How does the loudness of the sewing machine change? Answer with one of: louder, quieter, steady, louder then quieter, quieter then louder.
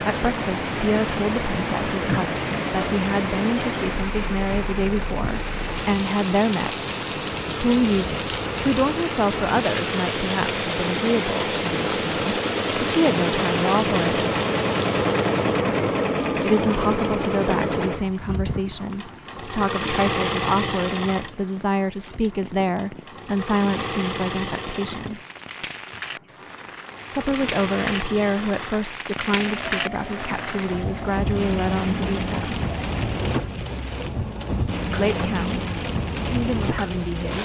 louder then quieter.